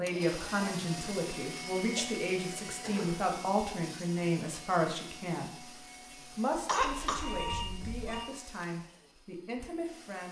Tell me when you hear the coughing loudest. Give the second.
7 s.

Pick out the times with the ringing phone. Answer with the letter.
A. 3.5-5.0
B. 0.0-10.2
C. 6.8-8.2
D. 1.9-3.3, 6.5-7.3
C.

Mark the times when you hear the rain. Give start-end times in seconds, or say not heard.
not heard.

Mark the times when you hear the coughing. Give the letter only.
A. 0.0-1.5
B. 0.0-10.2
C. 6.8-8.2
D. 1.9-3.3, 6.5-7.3
D.